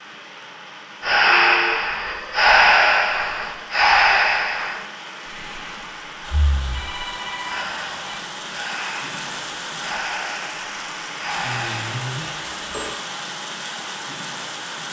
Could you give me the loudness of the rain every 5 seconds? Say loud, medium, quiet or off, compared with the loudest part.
medium, loud, loud.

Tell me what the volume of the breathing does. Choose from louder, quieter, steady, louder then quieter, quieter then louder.
quieter then louder.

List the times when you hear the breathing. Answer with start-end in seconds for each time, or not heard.
1.0-11.9.